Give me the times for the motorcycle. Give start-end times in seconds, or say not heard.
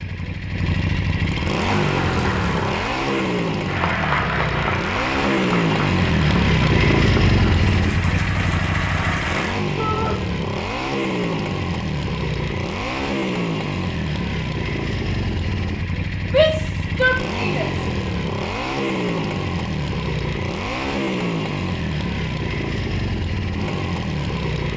0.0-24.7.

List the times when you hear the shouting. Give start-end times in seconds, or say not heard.
9.8-10.2, 16.2-17.7.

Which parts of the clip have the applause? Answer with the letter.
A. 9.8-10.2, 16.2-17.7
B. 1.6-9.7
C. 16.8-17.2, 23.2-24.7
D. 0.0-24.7
B.